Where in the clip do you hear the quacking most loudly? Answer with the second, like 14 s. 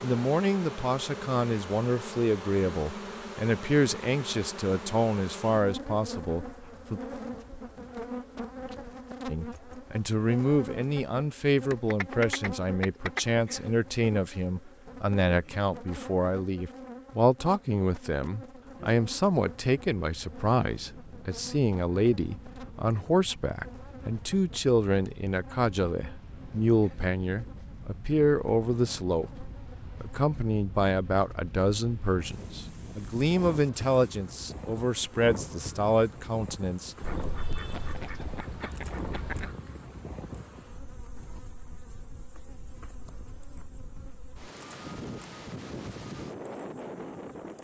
12 s.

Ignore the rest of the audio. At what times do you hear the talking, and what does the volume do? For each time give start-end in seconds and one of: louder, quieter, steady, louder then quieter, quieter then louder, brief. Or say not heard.
0.0-7.0 steady
9.2-37.0 steady.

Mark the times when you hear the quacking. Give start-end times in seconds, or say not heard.
11.7-13.2, 37.0-39.5.